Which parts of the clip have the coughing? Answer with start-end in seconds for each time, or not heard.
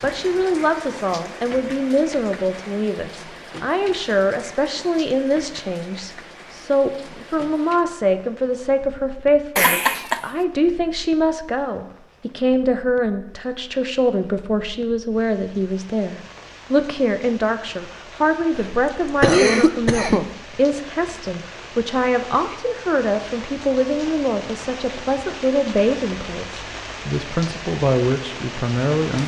9.6-10.2, 18.5-20.2.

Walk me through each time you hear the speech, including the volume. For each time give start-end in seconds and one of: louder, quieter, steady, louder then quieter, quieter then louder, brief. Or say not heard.
0.0-29.2 steady.